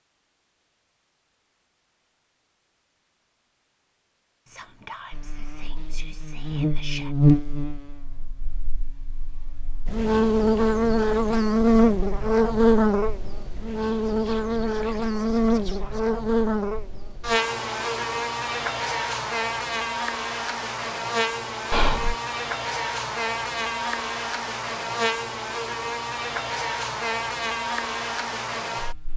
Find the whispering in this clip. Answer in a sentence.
You can hear the whispering from 4.5 to 7.2 s, from 13.8 to 16.1 s and from 21.7 to 22.1 s.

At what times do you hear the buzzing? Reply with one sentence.
The buzzing can be heard from 5.1 to 29.1 s.